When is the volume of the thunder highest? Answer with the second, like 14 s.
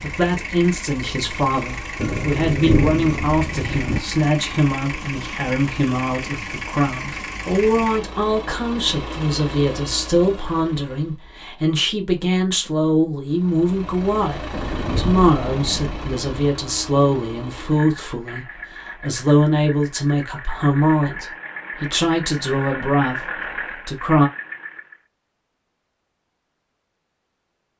3 s.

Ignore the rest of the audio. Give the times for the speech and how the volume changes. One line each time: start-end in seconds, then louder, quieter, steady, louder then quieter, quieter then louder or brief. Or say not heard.
0.0-23.2 steady
23.9-24.3 brief.